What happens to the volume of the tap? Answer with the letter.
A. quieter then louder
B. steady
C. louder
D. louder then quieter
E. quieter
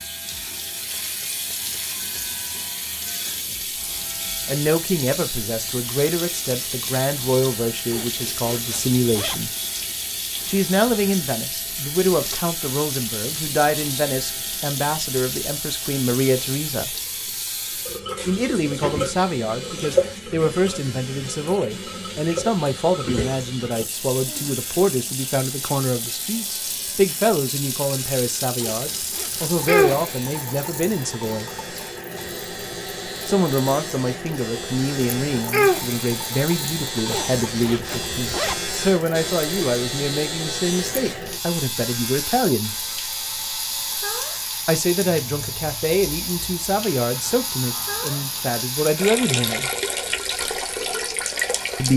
B.